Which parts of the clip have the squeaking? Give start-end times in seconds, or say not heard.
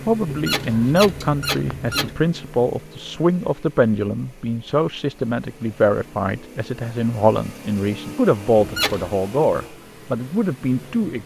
0.2-2.1, 8.6-9.2.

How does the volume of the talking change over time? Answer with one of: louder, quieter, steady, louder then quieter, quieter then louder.
steady.